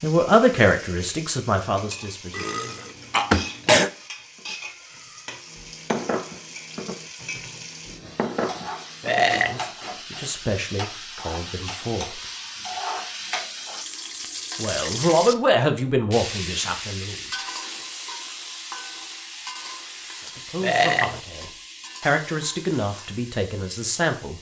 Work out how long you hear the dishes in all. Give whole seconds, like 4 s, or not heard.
5 s.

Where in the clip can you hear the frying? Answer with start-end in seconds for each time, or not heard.
0.0-24.3.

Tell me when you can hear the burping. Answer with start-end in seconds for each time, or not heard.
2.3-3.9, 9.0-9.7, 20.6-21.2.